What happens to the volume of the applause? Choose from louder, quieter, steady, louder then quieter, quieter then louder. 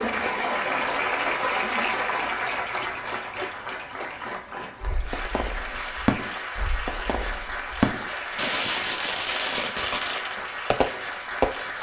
quieter.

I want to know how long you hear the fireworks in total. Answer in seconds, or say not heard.
7 s.